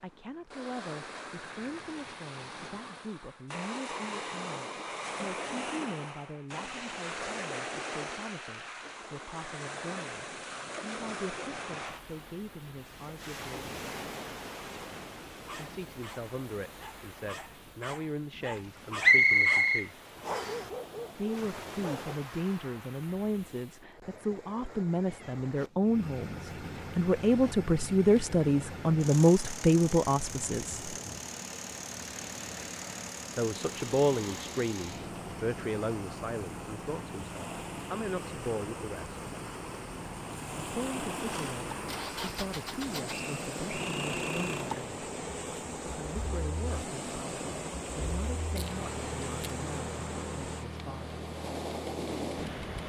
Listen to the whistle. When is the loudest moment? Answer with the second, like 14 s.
19 s.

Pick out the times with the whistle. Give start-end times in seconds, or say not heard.
19.0-20.6, 43.0-44.6.